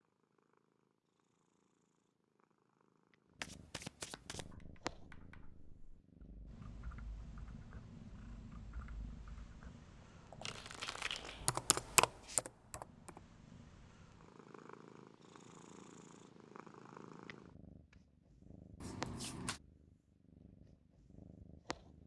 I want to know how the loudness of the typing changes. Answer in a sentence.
The volume of the typing goes up.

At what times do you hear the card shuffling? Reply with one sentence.
You can hear the card shuffling from 3.4 to 4.5 s, from 10.4 to 12.4 s and from 18.8 to 19.6 s.